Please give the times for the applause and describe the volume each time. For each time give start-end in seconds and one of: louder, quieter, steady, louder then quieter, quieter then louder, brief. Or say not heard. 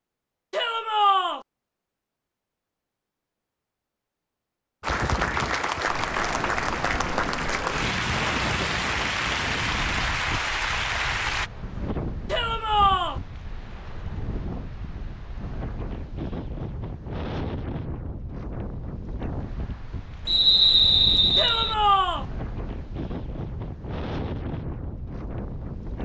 4.8-11.5 steady.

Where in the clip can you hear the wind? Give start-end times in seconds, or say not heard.
4.8-25.9.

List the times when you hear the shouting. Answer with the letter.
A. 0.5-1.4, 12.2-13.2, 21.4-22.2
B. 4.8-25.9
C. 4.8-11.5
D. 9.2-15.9
A.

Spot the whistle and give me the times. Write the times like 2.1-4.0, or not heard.
20.2-21.8.